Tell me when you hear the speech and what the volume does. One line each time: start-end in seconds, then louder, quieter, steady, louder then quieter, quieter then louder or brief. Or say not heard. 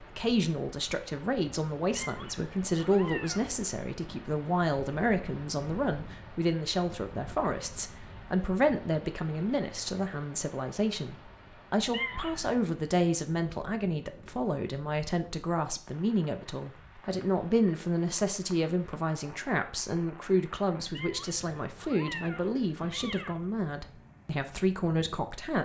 0.0-25.6 steady.